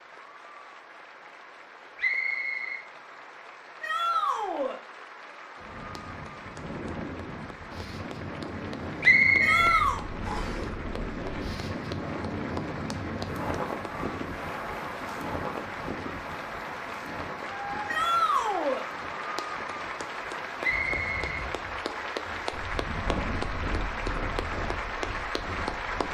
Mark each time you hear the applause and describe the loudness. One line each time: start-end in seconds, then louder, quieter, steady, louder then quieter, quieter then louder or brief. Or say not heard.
0.0-26.0 louder.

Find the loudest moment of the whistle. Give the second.
9 s.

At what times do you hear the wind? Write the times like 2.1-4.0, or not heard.
5.5-26.0.